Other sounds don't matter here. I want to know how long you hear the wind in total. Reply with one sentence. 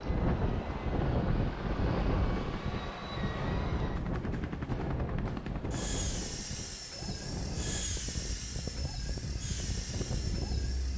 The wind can be heard for 11 seconds in total.